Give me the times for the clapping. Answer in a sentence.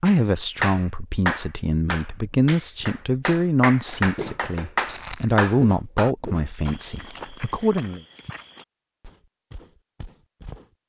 You can hear the clapping from 0.1 to 6.1 s.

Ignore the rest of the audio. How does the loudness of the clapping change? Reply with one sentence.
The volume of the clapping goes down, then up.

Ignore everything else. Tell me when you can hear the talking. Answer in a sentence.
The talking can be heard from 0.0 to 8.0 s.